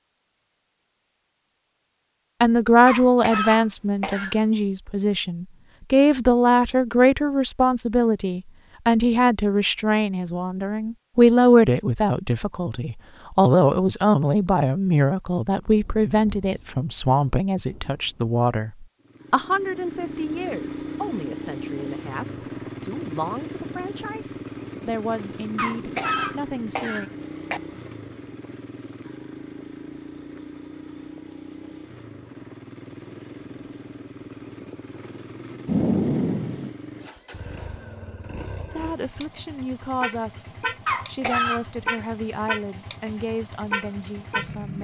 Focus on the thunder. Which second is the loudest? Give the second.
36 s.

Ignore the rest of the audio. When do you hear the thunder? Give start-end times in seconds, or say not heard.
15.6-18.3, 35.6-36.7.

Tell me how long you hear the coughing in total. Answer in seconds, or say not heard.
4 s.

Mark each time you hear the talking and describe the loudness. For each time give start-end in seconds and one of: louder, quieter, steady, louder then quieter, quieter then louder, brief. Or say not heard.
2.4-27.1 quieter
38.7-44.7 steady.